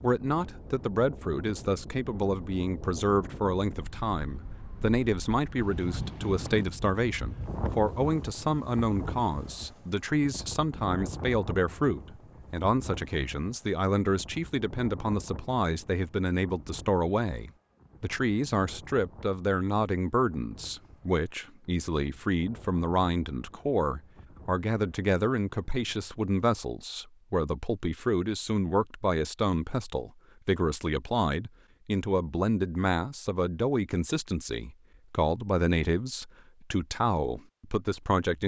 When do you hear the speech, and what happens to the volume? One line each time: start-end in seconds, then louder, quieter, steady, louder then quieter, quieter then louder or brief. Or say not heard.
0.0-38.4 steady.